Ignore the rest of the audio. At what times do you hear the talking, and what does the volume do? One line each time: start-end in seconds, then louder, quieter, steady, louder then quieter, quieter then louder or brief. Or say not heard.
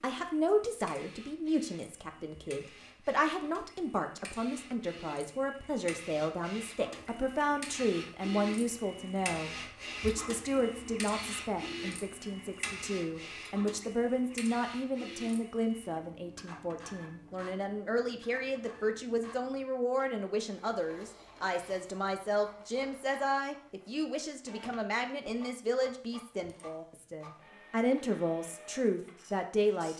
0.0-29.9 steady.